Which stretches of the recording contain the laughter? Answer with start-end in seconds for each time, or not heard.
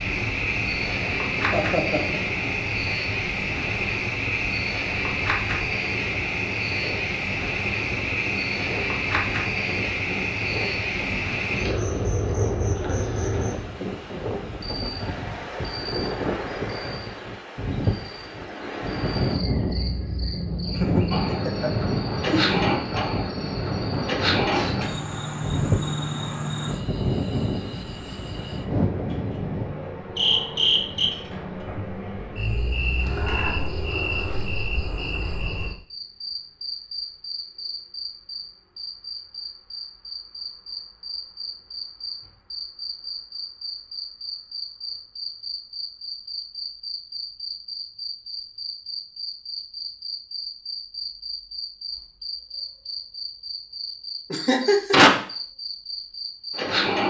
1.5-2.2, 20.8-22.6, 54.3-55.2.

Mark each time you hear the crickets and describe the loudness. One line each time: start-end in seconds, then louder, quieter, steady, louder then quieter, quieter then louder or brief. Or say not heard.
0.0-57.0 quieter.